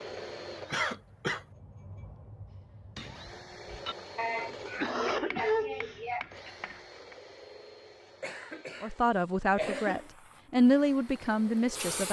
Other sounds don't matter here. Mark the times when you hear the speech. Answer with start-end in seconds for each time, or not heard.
8.8-12.0.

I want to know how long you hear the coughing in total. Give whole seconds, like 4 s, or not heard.
4 s.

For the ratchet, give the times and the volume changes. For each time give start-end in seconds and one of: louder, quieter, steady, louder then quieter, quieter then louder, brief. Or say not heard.
not heard.